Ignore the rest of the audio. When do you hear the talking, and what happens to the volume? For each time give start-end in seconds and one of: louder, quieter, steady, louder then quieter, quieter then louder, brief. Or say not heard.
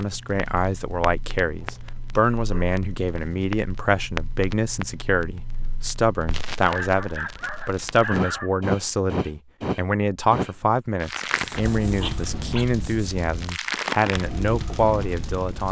0.0-15.6 steady.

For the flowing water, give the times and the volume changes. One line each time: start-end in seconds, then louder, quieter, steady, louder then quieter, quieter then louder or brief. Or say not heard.
not heard.